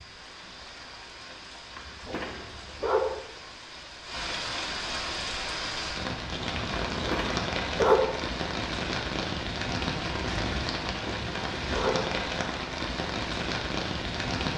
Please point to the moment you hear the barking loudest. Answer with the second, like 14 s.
8 s.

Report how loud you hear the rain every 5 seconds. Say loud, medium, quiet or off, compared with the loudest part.
medium, loud, loud.